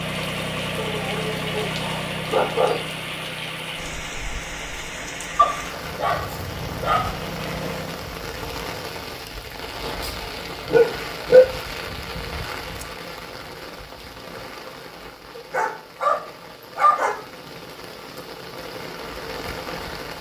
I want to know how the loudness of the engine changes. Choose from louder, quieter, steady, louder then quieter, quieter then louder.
quieter then louder.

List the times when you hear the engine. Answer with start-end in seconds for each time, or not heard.
0.0-8.2.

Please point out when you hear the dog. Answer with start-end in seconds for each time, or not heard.
0.8-2.8, 5.3-7.2, 10.7-11.5, 15.3-17.2.